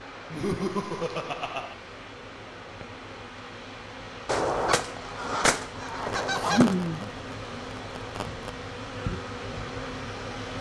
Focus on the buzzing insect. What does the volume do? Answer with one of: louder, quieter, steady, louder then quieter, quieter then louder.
louder.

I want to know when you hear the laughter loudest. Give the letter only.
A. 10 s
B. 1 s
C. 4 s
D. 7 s
D.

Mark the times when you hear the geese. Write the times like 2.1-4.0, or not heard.
4.2-6.8.